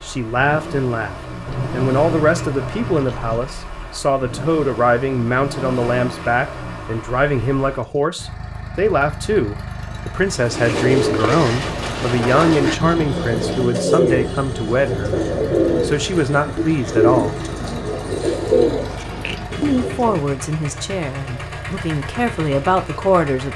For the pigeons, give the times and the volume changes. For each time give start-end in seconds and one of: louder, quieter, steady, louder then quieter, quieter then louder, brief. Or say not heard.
10.3-20.2 steady.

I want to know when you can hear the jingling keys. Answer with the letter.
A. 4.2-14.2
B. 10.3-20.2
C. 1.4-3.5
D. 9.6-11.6
C.